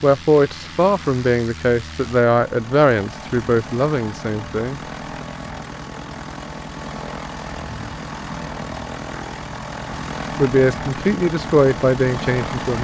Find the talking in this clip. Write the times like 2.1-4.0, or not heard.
0.0-5.2, 10.3-12.7.